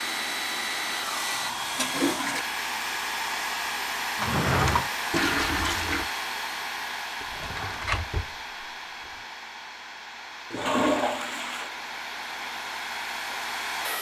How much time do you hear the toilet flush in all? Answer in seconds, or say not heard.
3 s.